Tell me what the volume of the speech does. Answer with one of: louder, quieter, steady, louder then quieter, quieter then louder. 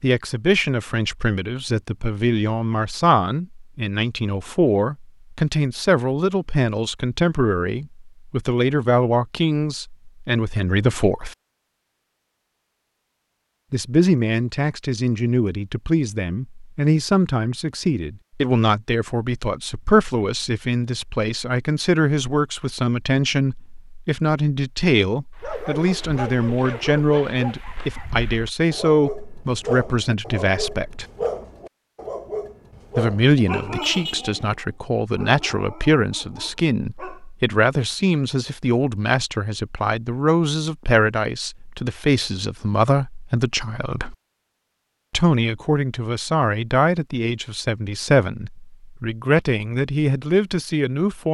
steady.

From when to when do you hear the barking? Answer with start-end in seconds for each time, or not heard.
25.4-37.2.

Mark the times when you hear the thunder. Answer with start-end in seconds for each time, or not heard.
not heard.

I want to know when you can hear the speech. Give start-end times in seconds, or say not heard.
0.0-11.3, 13.7-31.1, 33.0-44.1, 45.1-51.2.